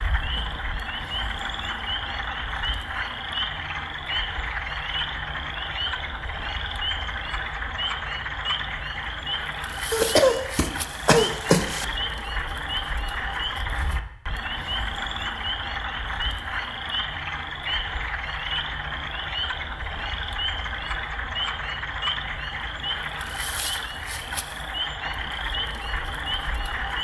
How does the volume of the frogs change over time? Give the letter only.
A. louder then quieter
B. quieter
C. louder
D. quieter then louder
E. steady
E.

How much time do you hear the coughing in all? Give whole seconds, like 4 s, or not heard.
2 s.